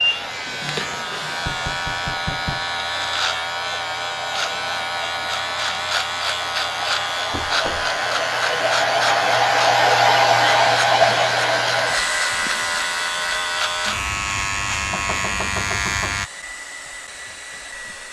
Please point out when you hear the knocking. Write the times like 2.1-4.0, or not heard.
1.4-2.7, 7.3-7.9, 14.9-16.2.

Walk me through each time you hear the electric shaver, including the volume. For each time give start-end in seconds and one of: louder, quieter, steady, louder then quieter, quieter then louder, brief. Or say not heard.
0.0-16.3 steady.